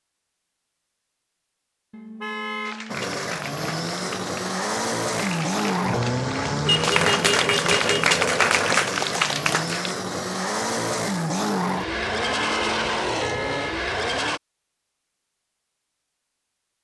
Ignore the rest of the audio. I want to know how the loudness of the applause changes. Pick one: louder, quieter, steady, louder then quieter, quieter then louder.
louder.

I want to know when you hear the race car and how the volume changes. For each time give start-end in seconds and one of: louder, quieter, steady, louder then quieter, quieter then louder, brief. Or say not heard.
2.9-14.4 steady.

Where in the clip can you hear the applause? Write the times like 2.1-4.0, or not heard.
2.6-9.9.